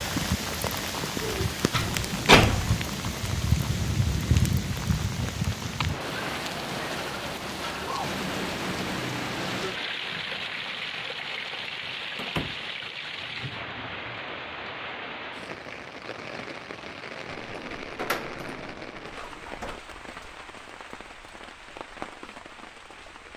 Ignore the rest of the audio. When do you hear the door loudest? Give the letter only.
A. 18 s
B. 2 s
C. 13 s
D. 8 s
B.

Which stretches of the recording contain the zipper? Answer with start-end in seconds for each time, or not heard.
not heard.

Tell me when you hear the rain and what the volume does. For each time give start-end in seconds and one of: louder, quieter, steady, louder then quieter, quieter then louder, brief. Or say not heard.
0.0-23.3 quieter.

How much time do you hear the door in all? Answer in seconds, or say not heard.
4 s.